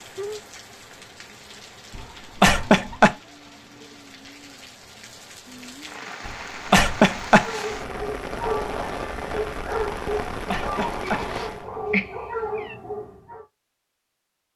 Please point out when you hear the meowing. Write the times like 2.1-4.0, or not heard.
10.8-12.8.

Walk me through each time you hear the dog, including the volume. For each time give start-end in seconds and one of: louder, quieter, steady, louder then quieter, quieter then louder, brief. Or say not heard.
7.4-13.4 steady.